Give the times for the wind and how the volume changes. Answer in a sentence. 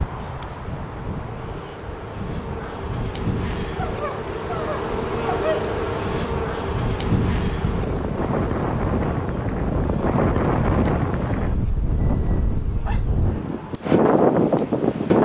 You can hear the wind from 0.0 to 15.2 s, getting louder.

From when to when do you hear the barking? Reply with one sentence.
You can hear the barking from 3.8 to 5.7 s and from 11.4 to 13.1 s.